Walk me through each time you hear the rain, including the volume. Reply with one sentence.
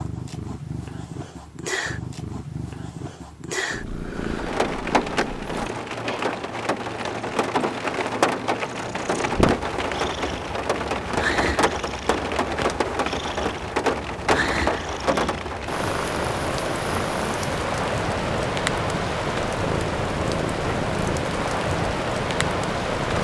You can hear the rain from 4.2 to 23.1 s, at a steady volume.